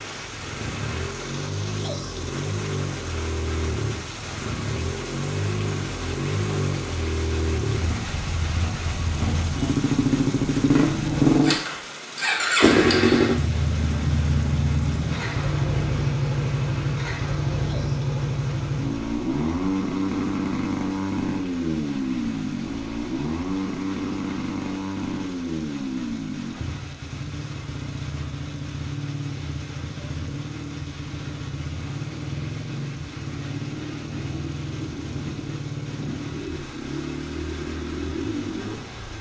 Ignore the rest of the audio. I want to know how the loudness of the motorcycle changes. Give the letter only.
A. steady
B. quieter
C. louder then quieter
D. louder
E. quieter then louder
C.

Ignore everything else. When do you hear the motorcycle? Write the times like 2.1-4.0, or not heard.
0.0-39.1.